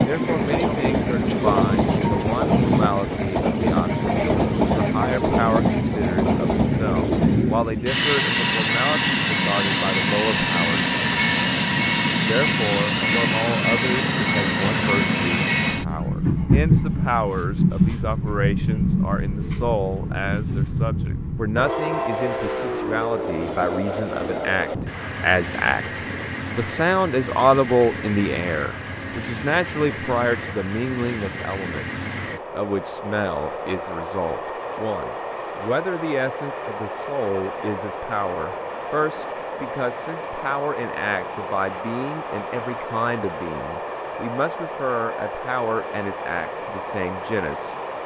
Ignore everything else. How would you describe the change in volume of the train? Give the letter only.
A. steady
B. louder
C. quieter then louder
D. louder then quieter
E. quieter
E.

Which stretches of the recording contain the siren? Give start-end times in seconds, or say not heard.
not heard.